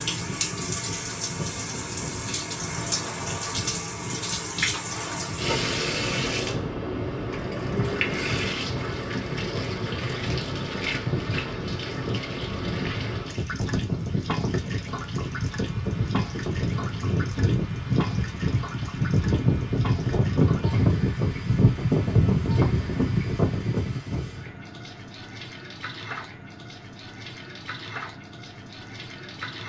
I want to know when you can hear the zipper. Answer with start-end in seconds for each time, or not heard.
not heard.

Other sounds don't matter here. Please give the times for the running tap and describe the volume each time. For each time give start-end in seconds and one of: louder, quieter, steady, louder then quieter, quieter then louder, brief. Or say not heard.
0.0-29.6 quieter.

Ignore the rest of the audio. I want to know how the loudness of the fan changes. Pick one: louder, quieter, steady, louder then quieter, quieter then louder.
louder.